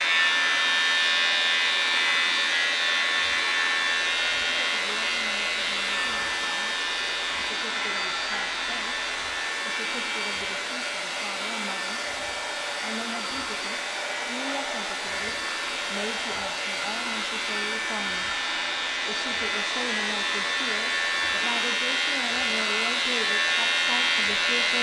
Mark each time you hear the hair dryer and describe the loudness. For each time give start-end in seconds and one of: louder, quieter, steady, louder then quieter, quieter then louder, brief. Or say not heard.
0.0-24.7 steady.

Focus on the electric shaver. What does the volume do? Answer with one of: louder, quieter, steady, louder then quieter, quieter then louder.
quieter then louder.